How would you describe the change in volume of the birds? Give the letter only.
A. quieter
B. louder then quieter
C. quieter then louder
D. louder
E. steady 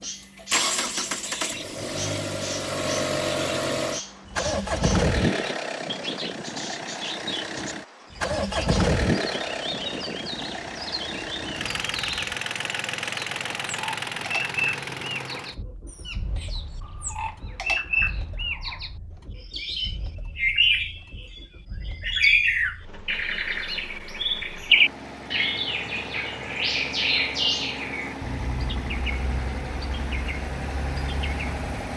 B.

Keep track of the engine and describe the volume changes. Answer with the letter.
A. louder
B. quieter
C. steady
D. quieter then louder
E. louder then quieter
D.